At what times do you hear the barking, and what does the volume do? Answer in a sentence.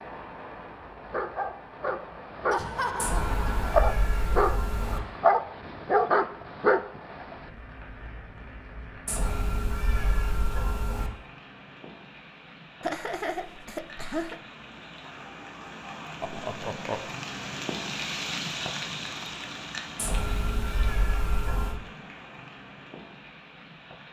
The barking can be heard from 1.1 to 7.4 s, getting quieter then louder.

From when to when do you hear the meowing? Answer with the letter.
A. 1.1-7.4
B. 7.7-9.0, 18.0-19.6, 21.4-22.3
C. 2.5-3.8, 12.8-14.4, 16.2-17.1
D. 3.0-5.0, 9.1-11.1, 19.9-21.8
D.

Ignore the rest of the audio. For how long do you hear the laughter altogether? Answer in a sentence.
The laughter can be heard for 4 seconds in total.